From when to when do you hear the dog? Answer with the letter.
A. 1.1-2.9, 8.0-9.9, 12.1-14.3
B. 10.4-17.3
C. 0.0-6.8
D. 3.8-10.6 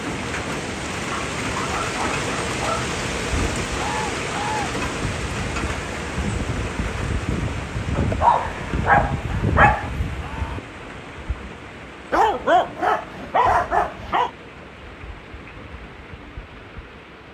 A.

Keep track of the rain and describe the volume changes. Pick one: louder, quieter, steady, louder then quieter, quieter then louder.
quieter.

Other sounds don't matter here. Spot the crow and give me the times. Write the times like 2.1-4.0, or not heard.
3.8-10.6.